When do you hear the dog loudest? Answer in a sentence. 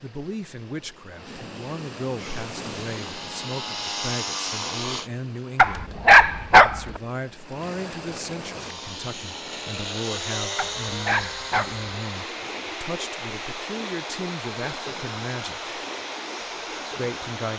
The volume of the dog peaks at 6 seconds.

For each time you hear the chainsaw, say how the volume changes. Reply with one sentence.
You can hear the chainsaw briefly from 2.1 to 5.1 s; and from 8.5 to 17.5 s, getting quieter.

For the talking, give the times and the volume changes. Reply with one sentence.
You can hear the talking from 0.0 to 15.8 s, at a steady volume; and briefly from 16.8 to 17.5 s.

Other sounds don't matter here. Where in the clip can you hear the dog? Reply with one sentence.
You can hear the dog from 5.5 to 7.0 s and from 10.6 to 11.8 s.